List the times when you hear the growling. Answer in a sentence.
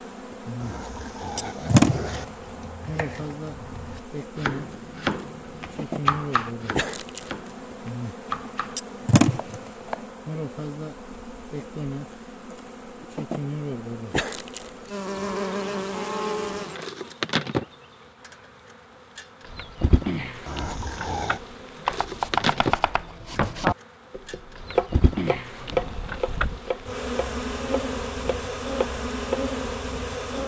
You can hear the growling from 0.6 to 2.2 s and from 20.4 to 21.4 s.